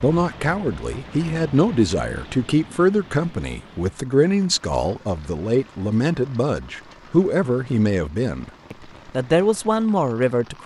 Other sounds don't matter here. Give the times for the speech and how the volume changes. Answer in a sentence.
You can hear the speech from 0.0 to 10.6 s, at a steady volume.